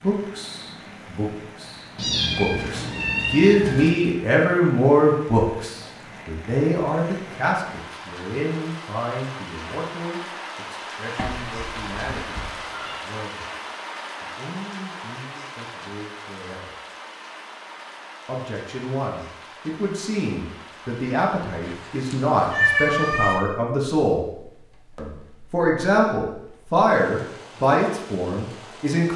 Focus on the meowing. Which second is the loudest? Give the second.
23 s.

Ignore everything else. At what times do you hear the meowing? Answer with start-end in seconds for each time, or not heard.
1.9-3.9, 11.2-12.9, 21.6-23.4.